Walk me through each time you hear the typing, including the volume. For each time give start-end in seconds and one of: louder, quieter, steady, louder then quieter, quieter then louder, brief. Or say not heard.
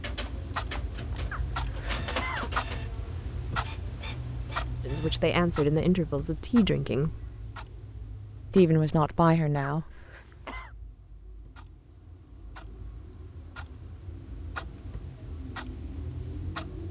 not heard.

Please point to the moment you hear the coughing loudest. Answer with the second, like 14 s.
2 s.